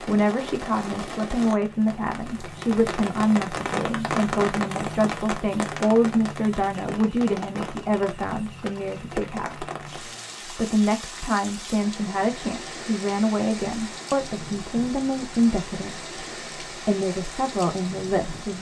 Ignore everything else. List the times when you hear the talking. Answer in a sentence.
The talking can be heard from 0.1 to 9.7 s, from 10.6 to 16.1 s and from 16.9 to 18.5 s.